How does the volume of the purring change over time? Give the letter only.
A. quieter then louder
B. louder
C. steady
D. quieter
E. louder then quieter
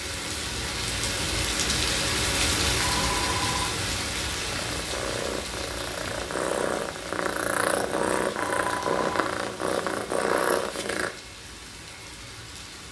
B.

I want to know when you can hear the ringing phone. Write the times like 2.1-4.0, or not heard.
2.8-3.8, 8.3-9.3.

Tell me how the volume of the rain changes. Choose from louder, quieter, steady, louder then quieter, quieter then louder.
quieter.